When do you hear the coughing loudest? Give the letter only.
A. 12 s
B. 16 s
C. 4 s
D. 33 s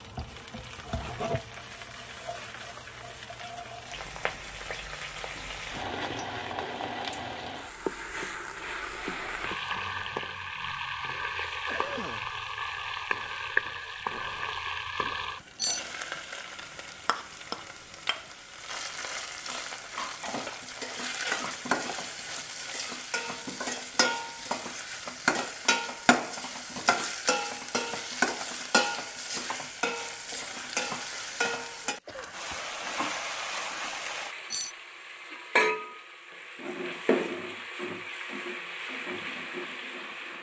A.